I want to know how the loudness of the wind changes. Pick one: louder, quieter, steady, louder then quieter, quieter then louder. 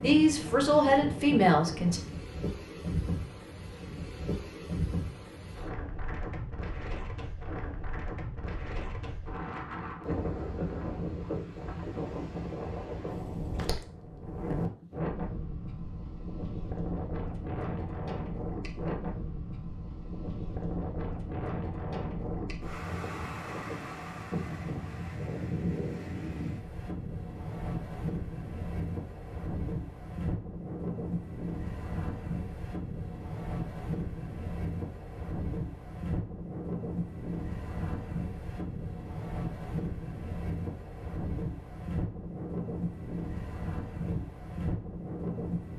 steady.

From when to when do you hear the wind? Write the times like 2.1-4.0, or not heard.
0.0-45.7.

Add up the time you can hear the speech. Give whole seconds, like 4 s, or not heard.
2 s.